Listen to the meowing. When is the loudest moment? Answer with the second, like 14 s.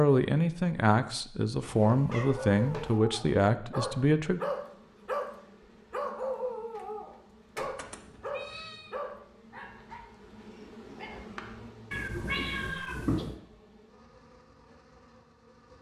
13 s.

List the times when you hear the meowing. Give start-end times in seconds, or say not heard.
1.6-3.0, 7.8-8.9, 11.9-13.3.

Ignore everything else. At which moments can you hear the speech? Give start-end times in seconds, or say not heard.
0.0-4.4.